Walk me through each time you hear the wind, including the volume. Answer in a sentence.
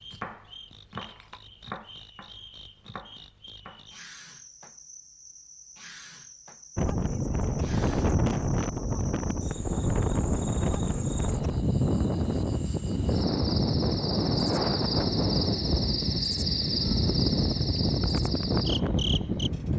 You can hear the wind from 6.8 to 19.7 s, at a steady volume.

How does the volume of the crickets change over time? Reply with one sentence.
The loudness of the crickets goes up.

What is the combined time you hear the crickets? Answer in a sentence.
You can hear the crickets for 20 seconds altogether.